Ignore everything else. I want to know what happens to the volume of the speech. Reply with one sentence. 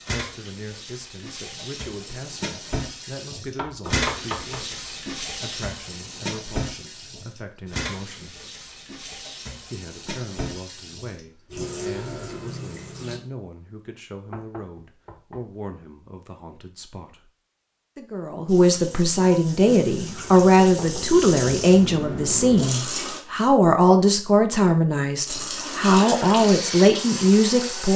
The loudness of the speech goes up.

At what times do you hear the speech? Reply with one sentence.
The speech can be heard from 0.1 to 8.3 s, from 9.6 to 17.3 s and from 17.9 to 27.9 s.